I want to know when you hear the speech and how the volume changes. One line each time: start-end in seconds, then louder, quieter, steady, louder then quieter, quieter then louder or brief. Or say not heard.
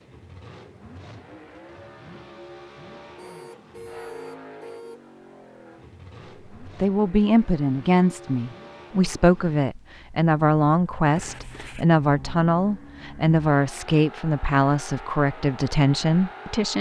6.6-16.7 steady.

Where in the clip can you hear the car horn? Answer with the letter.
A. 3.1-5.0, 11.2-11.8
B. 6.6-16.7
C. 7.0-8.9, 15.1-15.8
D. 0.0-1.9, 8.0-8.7
A.